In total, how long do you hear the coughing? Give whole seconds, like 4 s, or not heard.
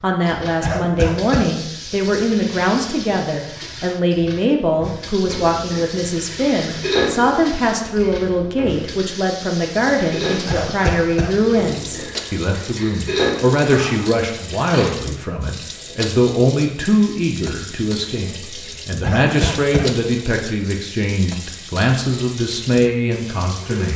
3 s.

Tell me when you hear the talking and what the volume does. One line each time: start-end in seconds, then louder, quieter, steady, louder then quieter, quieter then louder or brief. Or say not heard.
0.0-23.9 steady.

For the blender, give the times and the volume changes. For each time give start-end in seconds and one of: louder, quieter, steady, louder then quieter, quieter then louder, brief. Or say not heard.
not heard.